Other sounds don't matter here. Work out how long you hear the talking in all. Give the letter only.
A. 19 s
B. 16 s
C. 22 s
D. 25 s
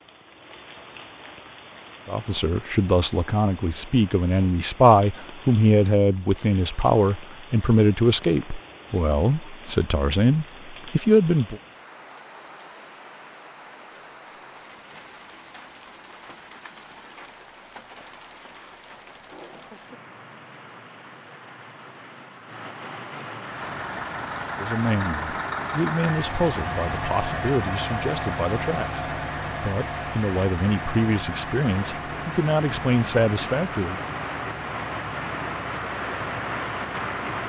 A.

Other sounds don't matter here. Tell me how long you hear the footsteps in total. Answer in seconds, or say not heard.
not heard.